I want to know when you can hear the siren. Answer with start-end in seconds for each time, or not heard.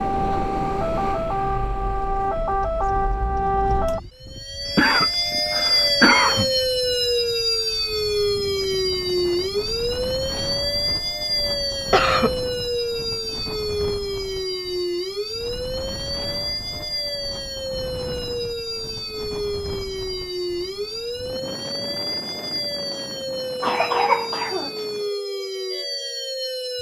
0.0-26.7.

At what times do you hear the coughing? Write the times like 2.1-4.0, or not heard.
4.7-6.7, 11.9-12.3, 23.6-24.9.